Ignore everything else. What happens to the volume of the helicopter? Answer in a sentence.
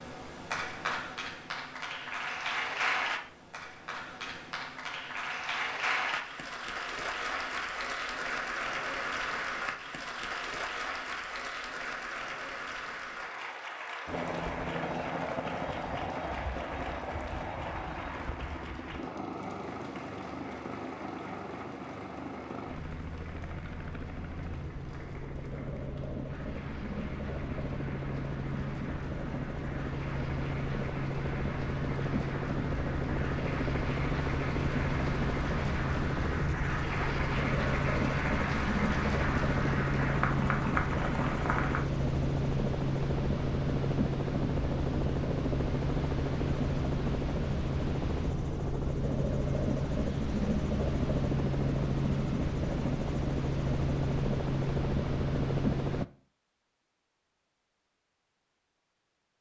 The loudness of the helicopter goes up.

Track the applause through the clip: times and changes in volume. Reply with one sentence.
The applause can be heard from 0.0 to 41.8 s, getting quieter then louder.